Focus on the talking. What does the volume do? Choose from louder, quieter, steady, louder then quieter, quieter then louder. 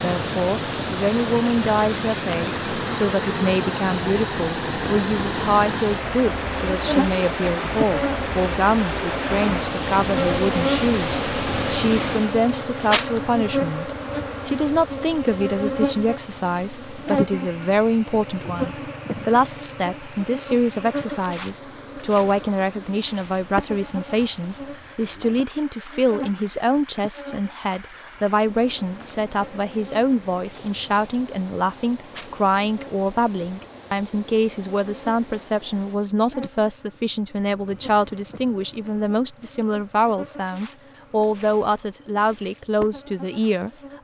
steady.